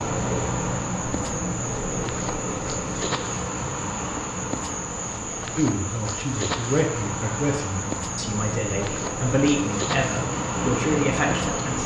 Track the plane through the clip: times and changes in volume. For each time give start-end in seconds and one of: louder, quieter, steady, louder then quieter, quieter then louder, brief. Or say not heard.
0.0-11.8 quieter then louder.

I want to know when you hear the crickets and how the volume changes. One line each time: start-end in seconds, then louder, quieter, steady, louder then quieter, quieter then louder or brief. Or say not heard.
0.0-11.8 steady.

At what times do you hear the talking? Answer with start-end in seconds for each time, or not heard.
5.5-11.8.